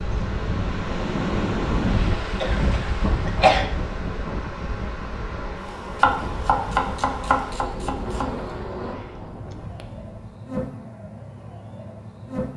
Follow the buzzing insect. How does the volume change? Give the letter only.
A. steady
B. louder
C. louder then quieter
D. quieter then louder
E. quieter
A.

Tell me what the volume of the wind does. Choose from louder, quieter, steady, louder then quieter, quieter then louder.
quieter.